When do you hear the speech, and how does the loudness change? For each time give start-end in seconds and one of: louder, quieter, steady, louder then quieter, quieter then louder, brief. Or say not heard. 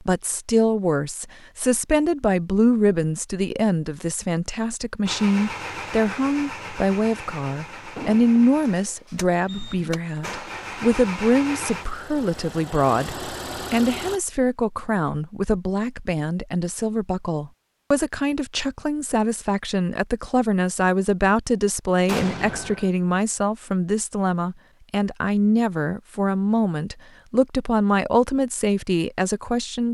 0.1-29.8 steady.